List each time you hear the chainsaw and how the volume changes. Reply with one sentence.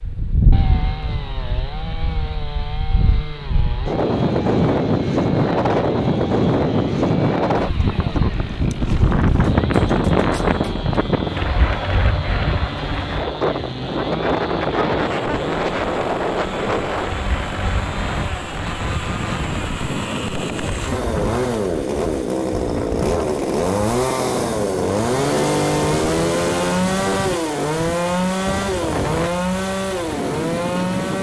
The chainsaw can be heard from 0.0 to 31.1 s, getting louder.